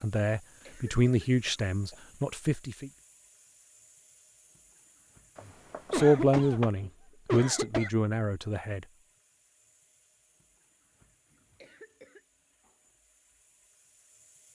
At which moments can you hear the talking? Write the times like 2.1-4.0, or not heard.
0.0-2.9, 5.9-8.8.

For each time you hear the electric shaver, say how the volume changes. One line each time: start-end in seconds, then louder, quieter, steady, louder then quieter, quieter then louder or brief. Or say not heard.
not heard.